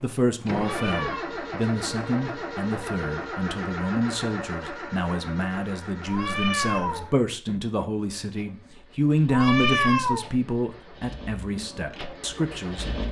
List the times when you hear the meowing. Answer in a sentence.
You can hear the meowing from 0.5 to 1.3 s, from 6.0 to 7.1 s and from 9.2 to 10.2 s.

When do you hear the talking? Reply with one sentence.
You can hear the talking from 0.0 to 13.0 s.